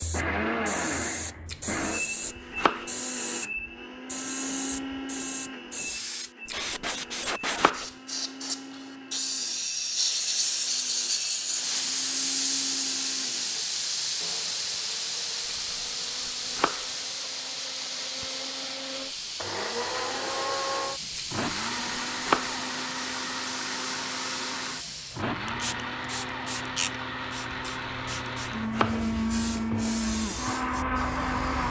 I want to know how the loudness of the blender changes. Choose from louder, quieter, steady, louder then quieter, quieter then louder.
quieter then louder.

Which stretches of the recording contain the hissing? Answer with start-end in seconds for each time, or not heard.
0.0-31.6.